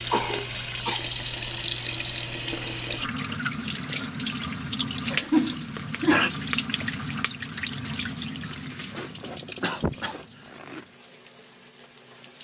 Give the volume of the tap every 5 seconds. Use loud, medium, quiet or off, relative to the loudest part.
loud, loud, quiet.